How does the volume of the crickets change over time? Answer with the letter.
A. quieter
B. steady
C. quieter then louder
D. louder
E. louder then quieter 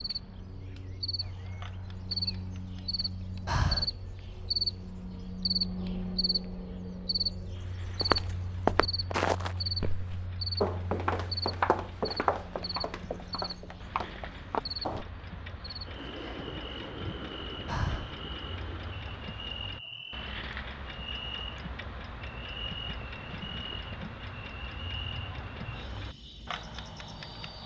A.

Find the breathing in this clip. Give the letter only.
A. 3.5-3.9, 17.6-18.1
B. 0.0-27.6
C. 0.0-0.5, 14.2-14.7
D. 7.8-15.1
A.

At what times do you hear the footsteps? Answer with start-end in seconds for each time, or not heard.
7.8-15.1.